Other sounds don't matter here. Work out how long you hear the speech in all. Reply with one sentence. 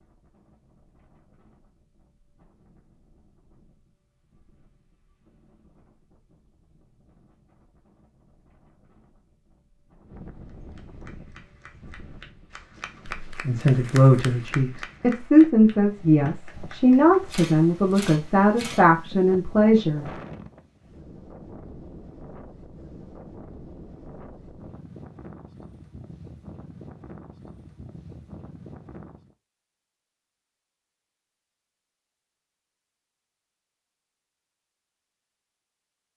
The speech can be heard for 7 seconds in total.